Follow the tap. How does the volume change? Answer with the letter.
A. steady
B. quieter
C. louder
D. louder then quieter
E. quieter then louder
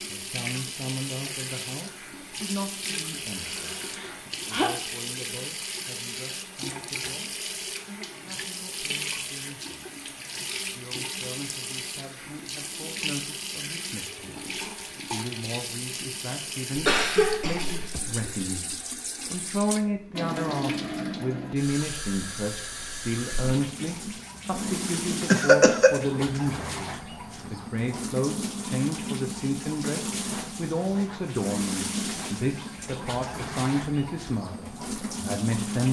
A.